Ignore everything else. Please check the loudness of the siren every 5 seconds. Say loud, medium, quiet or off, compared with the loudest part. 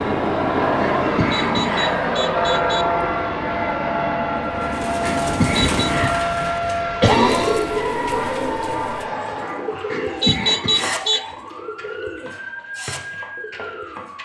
loud, loud, medium.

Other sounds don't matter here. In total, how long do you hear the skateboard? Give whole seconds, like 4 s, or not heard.
not heard.